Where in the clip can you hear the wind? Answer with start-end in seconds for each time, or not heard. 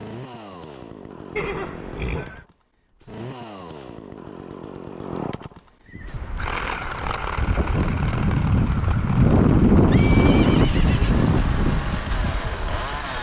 6.0-13.1.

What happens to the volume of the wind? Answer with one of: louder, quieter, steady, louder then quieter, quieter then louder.
louder then quieter.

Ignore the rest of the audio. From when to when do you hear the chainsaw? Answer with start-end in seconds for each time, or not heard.
0.0-13.1.